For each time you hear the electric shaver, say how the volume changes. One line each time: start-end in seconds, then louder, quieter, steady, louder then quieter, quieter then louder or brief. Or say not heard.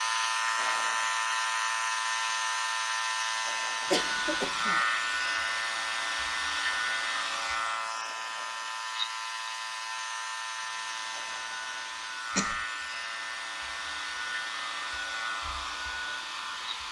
0.0-16.8 quieter.